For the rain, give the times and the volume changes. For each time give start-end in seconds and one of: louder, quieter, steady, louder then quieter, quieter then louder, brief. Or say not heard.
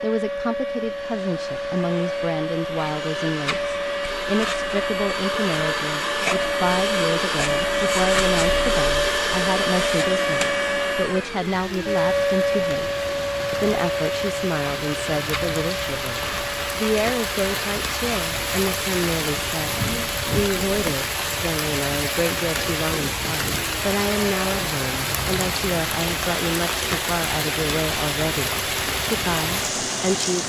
11.3-30.4 louder.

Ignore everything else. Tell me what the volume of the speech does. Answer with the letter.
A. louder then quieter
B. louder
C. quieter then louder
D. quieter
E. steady
E.